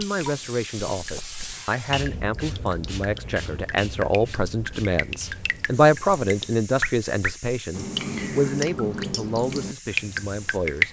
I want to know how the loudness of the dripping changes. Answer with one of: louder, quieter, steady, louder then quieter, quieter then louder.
louder.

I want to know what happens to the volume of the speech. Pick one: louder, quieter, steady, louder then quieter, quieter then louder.
louder then quieter.